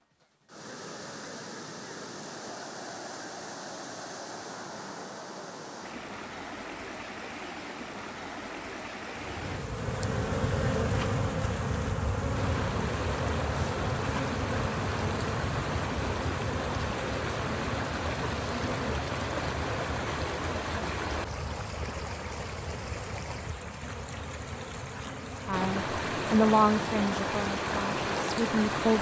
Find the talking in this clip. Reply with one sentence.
The talking can be heard from 25.4 to 28.9 s.